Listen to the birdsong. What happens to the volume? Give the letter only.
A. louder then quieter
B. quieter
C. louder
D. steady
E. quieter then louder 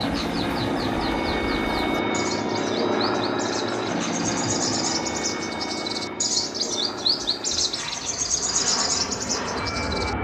C.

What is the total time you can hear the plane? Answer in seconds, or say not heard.
10 s.